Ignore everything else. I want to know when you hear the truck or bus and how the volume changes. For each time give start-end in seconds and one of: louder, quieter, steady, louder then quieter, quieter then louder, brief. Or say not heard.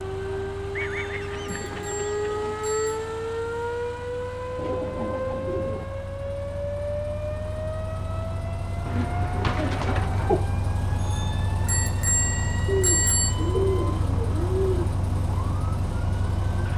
0.0-16.7 louder.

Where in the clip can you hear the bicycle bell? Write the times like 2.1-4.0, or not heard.
0.8-3.0, 11.0-13.3.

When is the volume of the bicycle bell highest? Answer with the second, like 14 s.
13 s.